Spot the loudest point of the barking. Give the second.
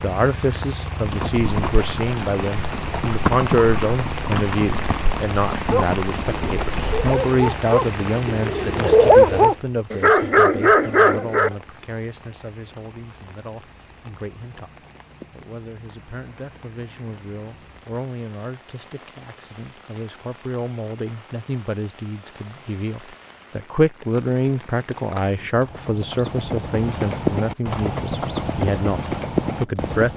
9 s.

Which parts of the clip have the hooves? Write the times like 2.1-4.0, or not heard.
0.9-7.2, 24.0-30.1.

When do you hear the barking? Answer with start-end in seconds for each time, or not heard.
5.7-11.5.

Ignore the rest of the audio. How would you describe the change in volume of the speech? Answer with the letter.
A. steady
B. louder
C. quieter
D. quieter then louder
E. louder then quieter
D.